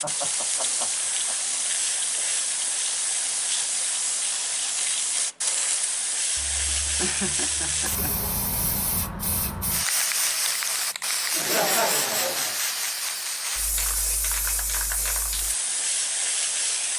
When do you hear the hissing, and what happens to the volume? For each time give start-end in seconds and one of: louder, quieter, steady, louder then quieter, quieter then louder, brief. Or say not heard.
0.0-16.9 steady.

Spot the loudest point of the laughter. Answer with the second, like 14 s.
12 s.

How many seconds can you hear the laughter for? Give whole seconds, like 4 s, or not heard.
5 s.